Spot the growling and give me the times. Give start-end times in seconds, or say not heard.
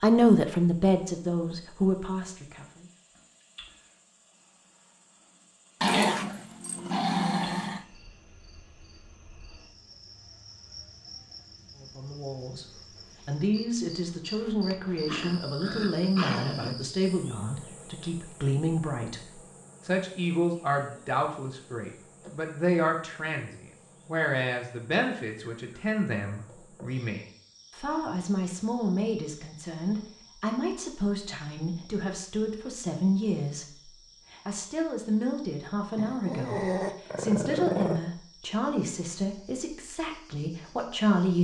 5.8-7.8, 15.1-16.8, 36.0-38.0.